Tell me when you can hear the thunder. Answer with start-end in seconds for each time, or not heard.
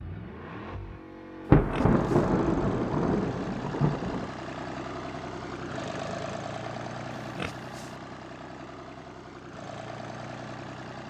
1.4-4.3.